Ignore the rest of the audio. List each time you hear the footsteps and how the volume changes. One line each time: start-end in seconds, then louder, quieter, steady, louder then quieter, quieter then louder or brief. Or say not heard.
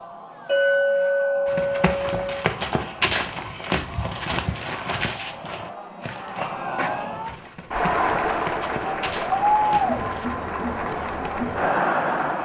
1.4-10.2 quieter.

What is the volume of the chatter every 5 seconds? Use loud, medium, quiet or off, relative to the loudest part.
quiet, loud, loud.